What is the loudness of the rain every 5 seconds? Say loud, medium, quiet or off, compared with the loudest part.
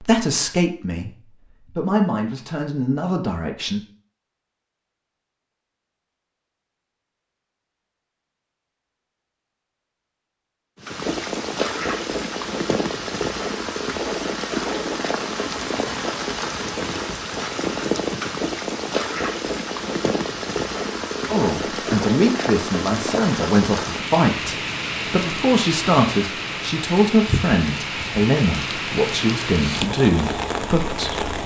off, off, loud, loud, loud, loud, loud.